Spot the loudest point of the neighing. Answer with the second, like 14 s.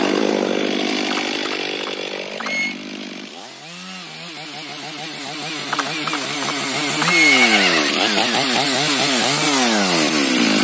7 s.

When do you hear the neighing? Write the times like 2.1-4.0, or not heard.
1.1-2.8, 5.7-8.0.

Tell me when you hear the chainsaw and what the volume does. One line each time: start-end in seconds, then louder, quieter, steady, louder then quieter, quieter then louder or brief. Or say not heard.
0.0-10.5 quieter then louder.